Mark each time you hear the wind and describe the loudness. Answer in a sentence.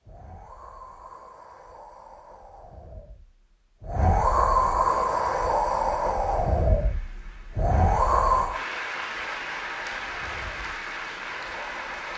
You can hear the wind from 0.0 to 12.1 s, getting louder then quieter.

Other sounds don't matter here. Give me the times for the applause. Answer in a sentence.
The applause can be heard from 5.0 to 12.1 s.